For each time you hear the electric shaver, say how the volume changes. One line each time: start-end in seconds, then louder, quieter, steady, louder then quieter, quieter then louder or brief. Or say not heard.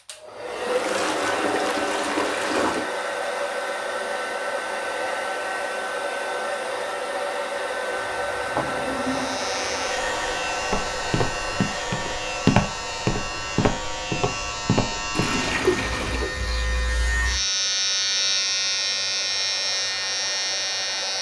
8.9-21.1 louder.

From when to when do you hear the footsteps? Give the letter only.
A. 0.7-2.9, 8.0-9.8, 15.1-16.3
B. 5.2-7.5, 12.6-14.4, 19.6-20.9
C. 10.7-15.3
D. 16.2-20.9
C.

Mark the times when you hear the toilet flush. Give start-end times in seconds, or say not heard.
0.7-2.9, 8.0-9.8, 15.1-16.3.